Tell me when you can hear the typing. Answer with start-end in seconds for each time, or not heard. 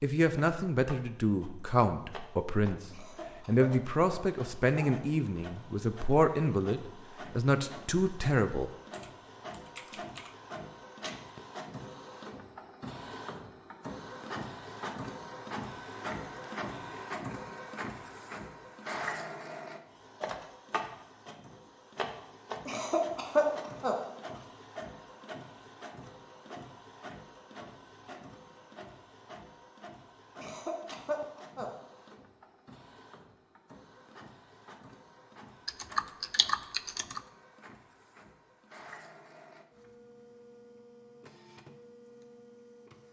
8.9-10.3, 35.6-37.2.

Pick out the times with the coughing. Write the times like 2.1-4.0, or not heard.
2.9-4.9, 22.6-23.9, 30.4-31.7.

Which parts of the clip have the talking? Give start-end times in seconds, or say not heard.
0.0-8.7.